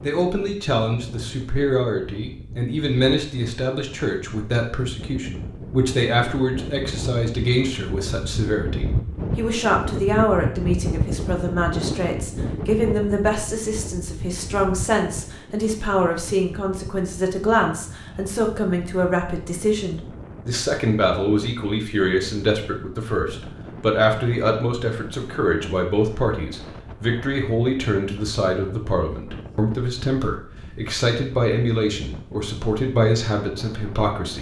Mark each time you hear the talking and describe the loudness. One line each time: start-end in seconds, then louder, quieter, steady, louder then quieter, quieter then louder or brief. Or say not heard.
0.0-34.3 steady.